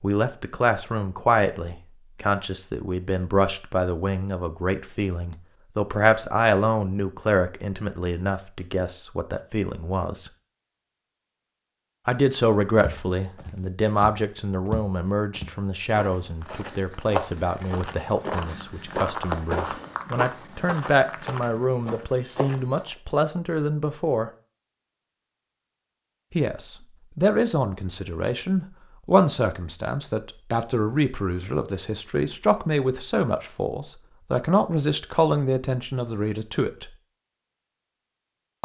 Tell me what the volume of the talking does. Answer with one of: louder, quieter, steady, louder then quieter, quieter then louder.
steady.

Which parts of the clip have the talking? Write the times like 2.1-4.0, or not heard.
0.0-10.3, 12.1-24.3, 26.4-36.9.